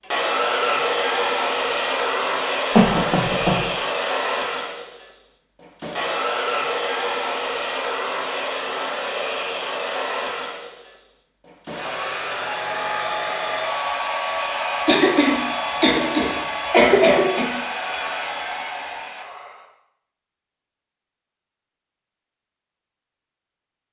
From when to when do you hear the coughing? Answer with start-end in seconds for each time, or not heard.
2.7-3.6, 14.8-17.5.